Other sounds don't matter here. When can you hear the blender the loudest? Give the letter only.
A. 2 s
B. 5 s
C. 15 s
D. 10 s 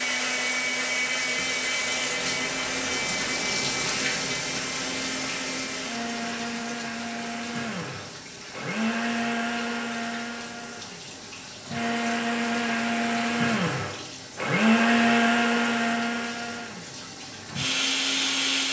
C.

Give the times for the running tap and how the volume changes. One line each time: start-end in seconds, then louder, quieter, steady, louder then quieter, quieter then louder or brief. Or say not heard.
0.0-18.6 quieter.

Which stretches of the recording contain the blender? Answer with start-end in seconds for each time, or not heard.
0.0-18.6.